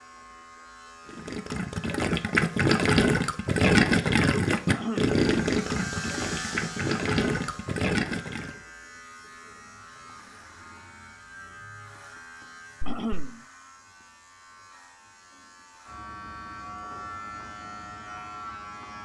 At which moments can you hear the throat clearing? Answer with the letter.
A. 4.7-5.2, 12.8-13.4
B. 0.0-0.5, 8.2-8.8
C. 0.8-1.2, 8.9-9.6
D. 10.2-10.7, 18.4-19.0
A.